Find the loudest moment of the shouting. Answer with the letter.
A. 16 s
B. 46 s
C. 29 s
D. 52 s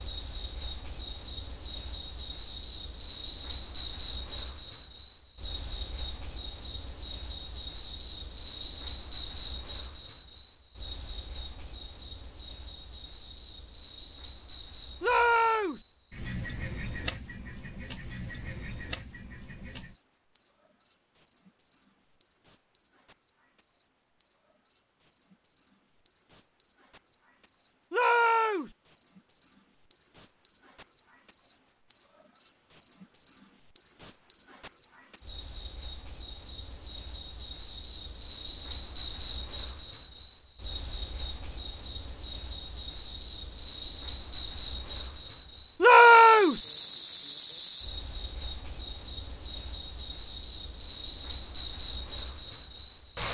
B.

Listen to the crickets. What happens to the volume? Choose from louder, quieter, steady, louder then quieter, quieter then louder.
quieter then louder.